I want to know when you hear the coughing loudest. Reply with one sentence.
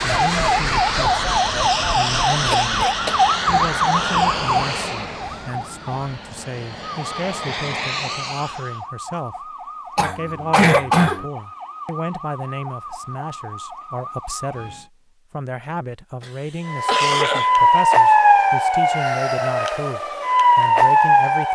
The loudest moment of the coughing is at 11 seconds.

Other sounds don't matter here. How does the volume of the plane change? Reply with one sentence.
The loudness of the plane goes down, then up.